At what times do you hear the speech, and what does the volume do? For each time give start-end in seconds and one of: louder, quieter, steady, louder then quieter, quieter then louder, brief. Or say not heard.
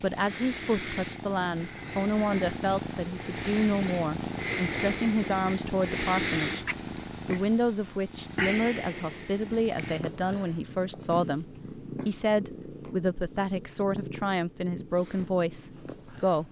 0.0-6.7 steady
7.2-16.4 steady.